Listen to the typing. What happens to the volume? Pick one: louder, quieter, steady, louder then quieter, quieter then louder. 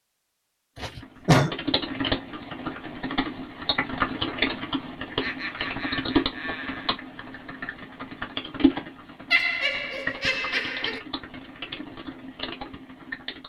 quieter.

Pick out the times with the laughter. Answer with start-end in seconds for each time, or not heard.
0.8-1.5, 5.2-7.0, 9.3-11.0.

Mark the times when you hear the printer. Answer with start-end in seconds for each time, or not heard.
not heard.